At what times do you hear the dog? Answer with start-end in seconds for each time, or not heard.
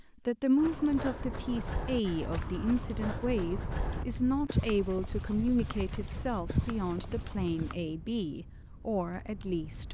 not heard.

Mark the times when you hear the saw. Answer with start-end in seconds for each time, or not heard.
not heard.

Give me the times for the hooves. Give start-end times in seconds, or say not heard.
0.6-7.8.